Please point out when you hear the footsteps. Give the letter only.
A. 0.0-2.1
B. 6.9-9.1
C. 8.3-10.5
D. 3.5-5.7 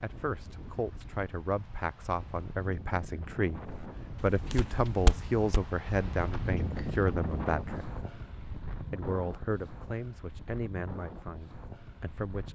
D.